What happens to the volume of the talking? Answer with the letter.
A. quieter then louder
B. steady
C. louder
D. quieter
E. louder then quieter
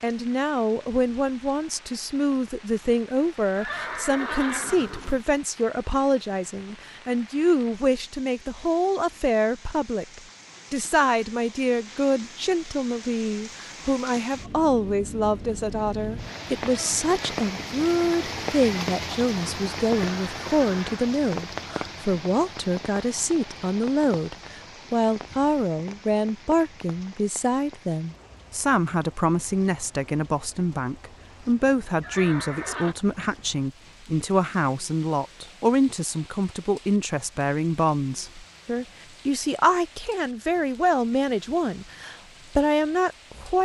B.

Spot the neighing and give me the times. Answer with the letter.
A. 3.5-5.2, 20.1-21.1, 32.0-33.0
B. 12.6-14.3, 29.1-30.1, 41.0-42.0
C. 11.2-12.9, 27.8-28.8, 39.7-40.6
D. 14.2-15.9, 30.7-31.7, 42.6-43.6
A.